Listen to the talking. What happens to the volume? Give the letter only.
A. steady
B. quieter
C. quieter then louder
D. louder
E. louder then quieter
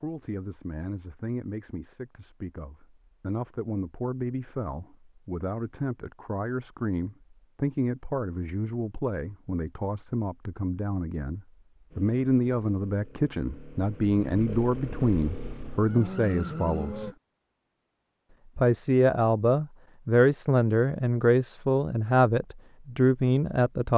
D.